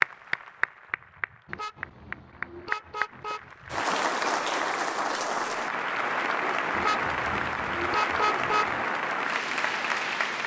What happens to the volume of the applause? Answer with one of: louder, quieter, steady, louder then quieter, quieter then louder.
louder.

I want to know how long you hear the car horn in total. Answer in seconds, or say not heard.
4 s.